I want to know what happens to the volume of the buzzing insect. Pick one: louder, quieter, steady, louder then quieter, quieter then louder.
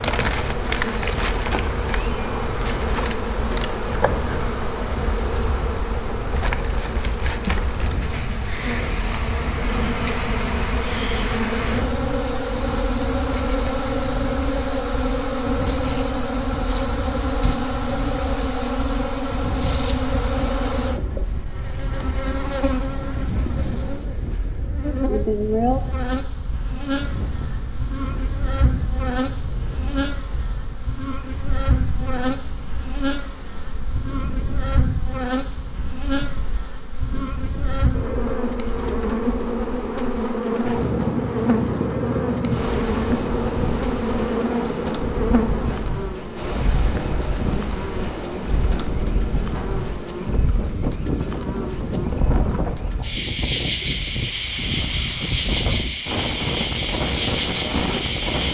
steady.